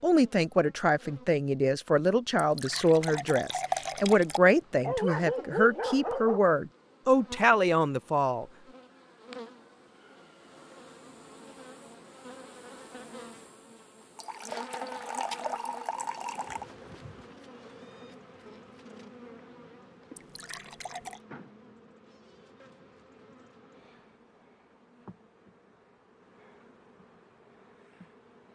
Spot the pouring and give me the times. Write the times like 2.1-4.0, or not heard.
2.4-4.4, 14.2-16.6, 20.1-21.2.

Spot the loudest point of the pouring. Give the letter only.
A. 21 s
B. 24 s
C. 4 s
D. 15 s
C.